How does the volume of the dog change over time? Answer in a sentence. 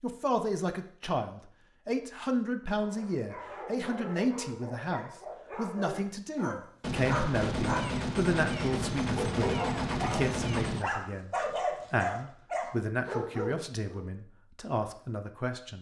The volume of the dog goes up.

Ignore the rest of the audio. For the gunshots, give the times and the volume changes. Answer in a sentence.
You can hear the gunshots from 6.8 to 10.8 s, at a steady volume.